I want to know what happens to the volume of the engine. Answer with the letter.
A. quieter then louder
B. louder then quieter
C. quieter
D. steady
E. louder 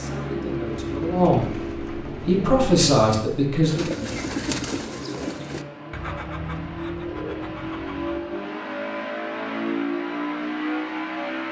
A.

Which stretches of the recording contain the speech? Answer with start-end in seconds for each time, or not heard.
0.0-3.9.